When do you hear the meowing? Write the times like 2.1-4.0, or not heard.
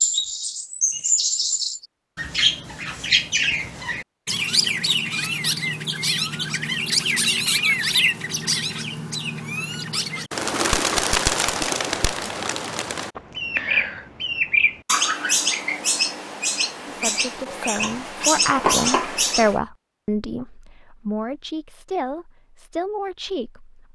not heard.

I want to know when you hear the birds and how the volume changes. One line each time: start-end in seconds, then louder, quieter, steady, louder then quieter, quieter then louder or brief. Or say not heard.
0.0-19.6 steady.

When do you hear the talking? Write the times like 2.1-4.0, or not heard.
16.9-23.8.